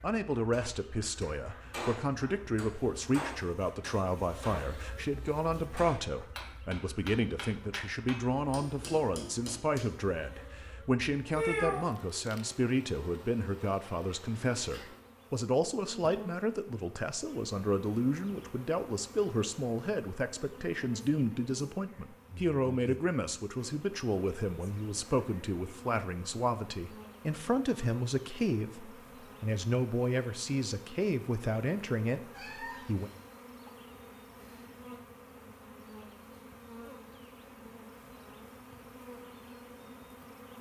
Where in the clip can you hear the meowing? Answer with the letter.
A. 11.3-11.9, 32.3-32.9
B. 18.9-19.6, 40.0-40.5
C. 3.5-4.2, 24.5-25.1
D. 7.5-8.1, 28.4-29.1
A.